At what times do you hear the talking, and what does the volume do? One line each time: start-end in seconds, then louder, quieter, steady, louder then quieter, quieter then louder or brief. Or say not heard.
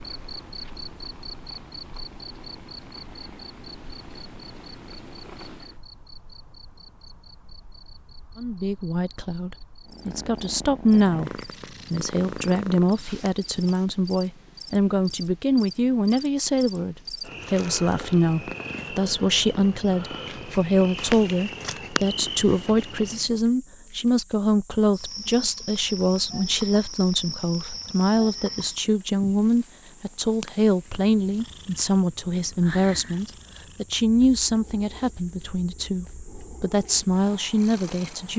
8.3-38.3 steady.